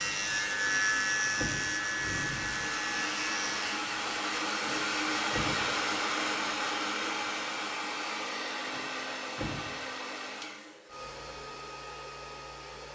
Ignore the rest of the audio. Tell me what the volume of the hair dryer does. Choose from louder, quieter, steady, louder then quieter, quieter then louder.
louder then quieter.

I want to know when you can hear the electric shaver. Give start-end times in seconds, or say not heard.
0.0-3.8.